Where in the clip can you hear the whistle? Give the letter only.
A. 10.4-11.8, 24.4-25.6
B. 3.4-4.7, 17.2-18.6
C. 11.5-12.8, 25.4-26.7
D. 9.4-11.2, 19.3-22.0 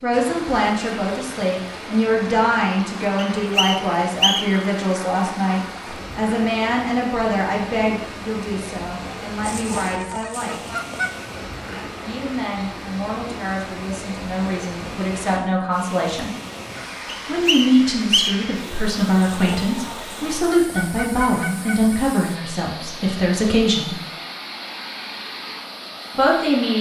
B.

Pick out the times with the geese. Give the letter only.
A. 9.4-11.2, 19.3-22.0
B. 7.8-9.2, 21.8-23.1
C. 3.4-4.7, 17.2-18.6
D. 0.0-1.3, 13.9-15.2
A.